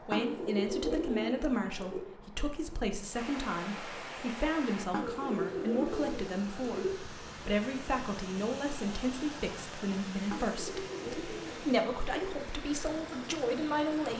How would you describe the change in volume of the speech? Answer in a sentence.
The volume of the speech stays about the same.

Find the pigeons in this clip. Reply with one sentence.
You can hear the pigeons from 0.1 to 2.0 s, from 4.9 to 7.0 s and from 10.3 to 12.3 s.